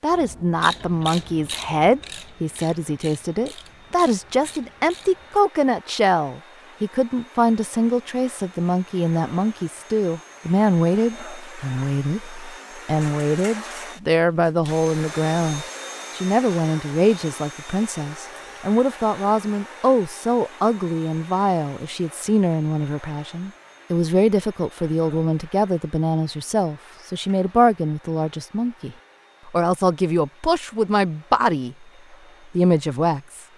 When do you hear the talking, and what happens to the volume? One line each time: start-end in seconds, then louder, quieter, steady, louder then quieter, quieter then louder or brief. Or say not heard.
0.0-31.8 steady
32.5-33.4 brief.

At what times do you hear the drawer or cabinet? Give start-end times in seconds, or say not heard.
not heard.